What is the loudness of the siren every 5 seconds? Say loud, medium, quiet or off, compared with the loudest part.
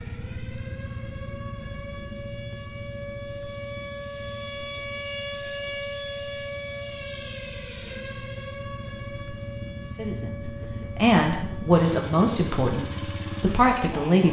loud, loud, medium.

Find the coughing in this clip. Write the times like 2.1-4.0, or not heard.
not heard.